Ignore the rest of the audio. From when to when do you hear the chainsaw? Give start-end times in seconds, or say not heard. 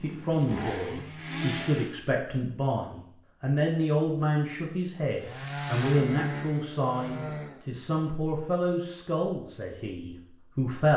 0.0-1.9, 5.2-7.7.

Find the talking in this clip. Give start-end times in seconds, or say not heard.
0.0-10.9.